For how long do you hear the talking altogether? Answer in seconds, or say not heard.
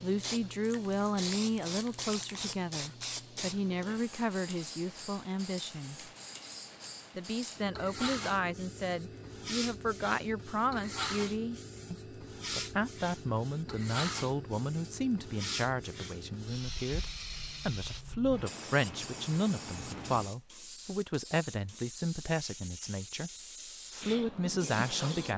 24 s.